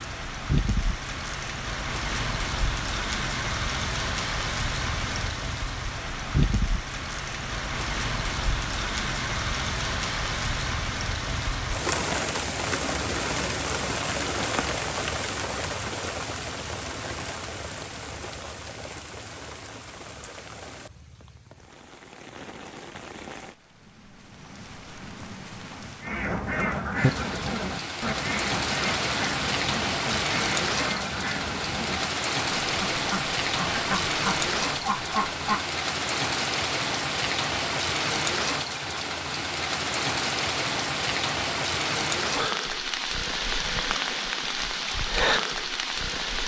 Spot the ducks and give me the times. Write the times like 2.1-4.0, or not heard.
26.0-35.6.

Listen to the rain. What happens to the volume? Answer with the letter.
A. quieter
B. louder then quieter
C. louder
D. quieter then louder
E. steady
D.